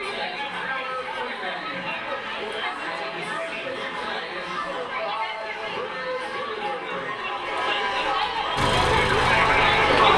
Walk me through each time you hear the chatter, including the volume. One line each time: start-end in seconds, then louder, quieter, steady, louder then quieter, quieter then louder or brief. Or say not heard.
0.0-10.1 louder.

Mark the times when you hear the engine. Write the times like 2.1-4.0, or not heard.
8.6-10.1.